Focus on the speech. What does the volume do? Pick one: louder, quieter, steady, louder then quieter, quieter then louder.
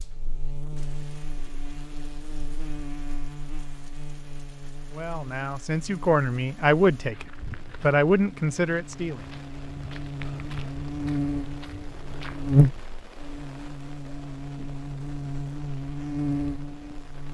louder.